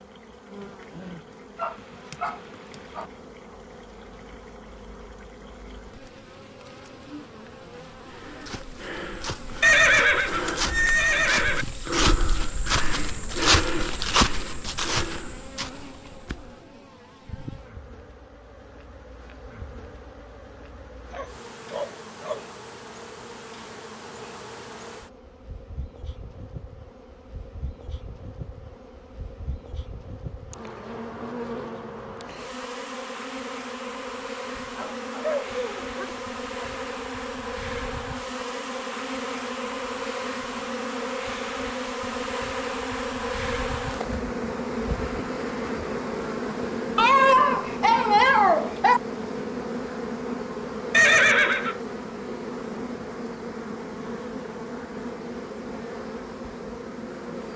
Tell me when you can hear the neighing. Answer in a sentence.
You can hear the neighing from 9.6 to 11.7 s and from 50.9 to 51.8 s.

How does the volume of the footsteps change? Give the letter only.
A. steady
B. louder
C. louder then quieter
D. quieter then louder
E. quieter
C.